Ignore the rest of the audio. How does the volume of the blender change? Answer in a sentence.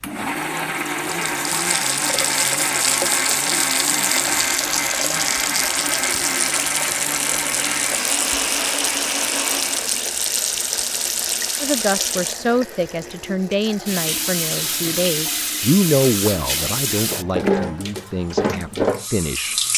The loudness of the blender stays about the same.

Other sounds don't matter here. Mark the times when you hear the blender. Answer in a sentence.
You can hear the blender from 0.0 to 10.1 s.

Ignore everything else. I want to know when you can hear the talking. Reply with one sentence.
The talking can be heard from 11.6 to 19.6 s.